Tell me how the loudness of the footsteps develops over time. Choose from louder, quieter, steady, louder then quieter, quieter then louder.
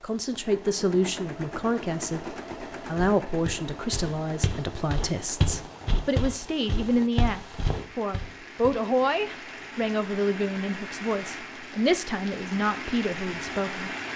louder then quieter.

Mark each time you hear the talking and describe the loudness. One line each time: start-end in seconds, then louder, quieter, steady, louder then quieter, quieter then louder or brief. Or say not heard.
0.0-14.1 steady.